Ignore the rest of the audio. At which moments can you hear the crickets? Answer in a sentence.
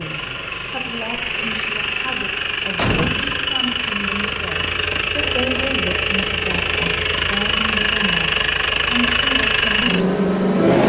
The crickets can't be heard in this clip.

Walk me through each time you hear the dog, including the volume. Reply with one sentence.
The dog can't be heard in this clip.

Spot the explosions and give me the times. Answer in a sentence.
The explosions can be heard from 2.8 to 3.5 s.